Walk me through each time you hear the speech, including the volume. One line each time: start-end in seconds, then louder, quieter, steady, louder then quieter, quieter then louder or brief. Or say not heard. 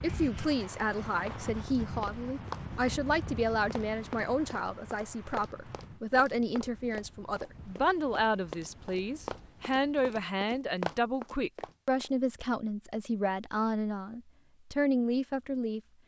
0.0-15.8 steady.